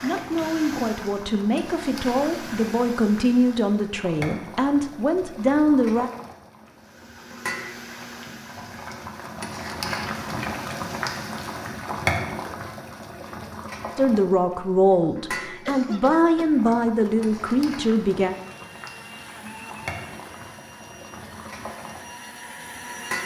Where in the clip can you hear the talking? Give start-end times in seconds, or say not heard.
0.0-6.1, 13.9-18.4.